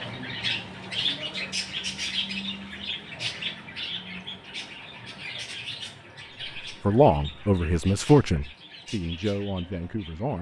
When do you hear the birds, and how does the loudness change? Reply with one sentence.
The birds can be heard from 0.0 to 10.3 s, getting quieter.